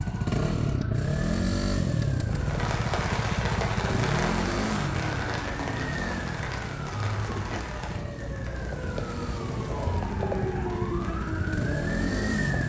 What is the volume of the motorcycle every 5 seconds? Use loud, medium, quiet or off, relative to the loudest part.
loud, medium, loud.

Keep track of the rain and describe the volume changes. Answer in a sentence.
The loudness of the rain goes down.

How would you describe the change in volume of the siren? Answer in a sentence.
The volume of the siren goes up.